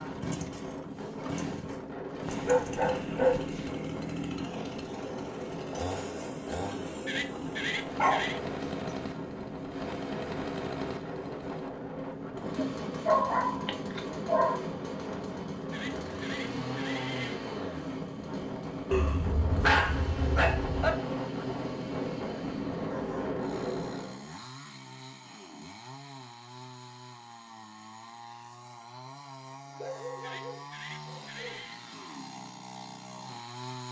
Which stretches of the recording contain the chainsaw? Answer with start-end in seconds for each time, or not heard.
0.0-33.8.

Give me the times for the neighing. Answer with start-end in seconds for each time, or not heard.
7.0-8.4, 15.7-17.4, 30.2-31.8.